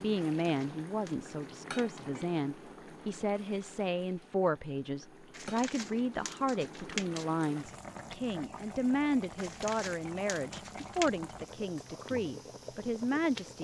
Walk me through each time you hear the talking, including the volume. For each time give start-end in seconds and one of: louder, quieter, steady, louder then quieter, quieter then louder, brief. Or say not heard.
0.0-13.5 steady.